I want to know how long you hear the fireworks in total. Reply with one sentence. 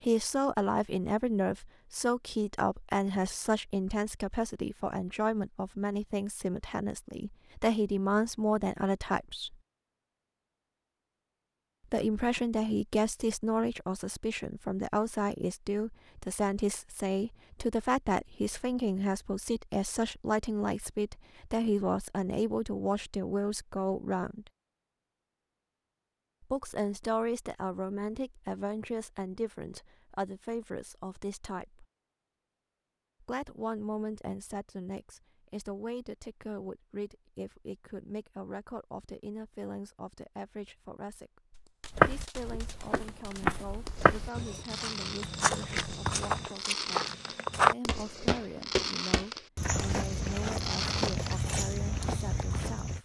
You can hear the fireworks for 10 seconds altogether.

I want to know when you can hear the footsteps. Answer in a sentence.
You can hear the footsteps from 42.0 to 53.0 s.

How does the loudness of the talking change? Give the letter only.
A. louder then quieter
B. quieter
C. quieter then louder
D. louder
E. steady
B.